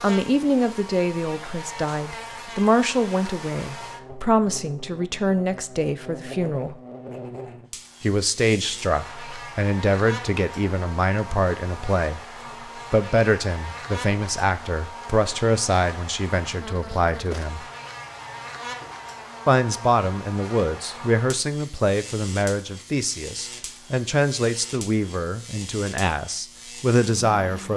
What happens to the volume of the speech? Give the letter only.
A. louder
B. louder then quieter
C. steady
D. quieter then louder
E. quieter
C.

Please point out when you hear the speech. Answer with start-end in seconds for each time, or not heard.
0.0-6.8, 8.0-12.2, 12.9-17.6, 19.4-27.7.